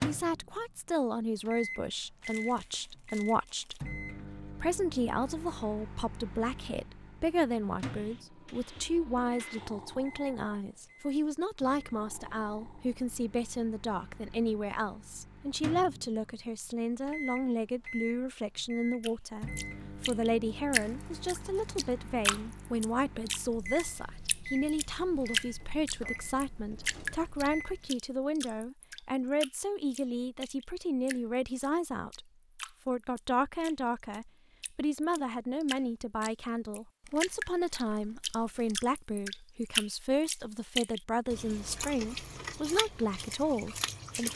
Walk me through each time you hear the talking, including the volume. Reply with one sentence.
The talking can be heard from 0.1 to 32.2 s, at a steady volume; and from 32.9 to 44.3 s, at a steady volume.